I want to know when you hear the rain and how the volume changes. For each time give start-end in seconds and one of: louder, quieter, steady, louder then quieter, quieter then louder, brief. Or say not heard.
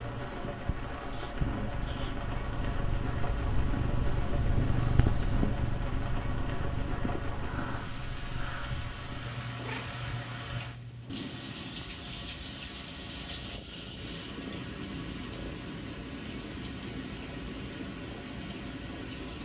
0.0-19.4 steady.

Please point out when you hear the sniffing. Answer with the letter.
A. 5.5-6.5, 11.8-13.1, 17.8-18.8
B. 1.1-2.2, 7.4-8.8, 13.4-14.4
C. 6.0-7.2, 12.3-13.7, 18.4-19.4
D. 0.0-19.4
B.